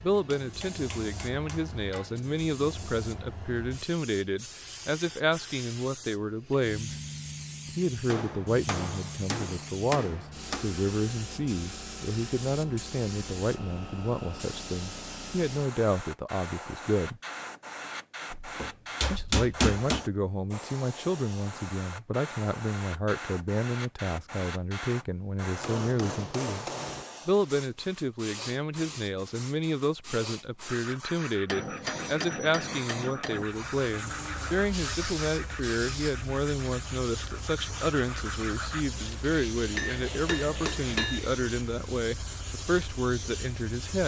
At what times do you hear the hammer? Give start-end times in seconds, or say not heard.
0.3-2.0, 8.1-10.7, 18.3-20.1, 25.6-27.1, 31.4-33.5, 39.7-41.2.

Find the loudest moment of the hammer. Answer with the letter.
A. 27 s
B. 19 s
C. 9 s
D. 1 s
B.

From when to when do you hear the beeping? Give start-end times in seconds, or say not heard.
not heard.